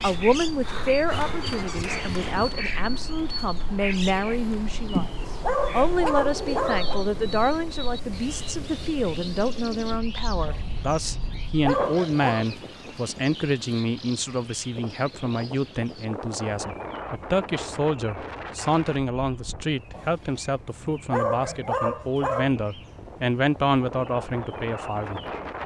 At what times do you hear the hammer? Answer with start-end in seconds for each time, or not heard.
1.1-2.6.